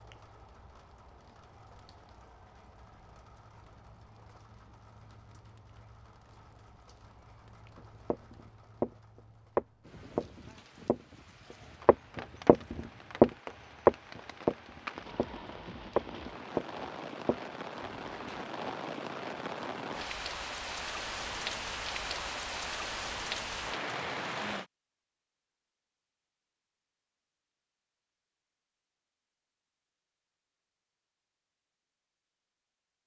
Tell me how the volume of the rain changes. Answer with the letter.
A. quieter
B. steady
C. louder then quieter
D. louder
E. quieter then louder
D.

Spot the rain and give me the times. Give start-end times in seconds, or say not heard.
0.0-24.6.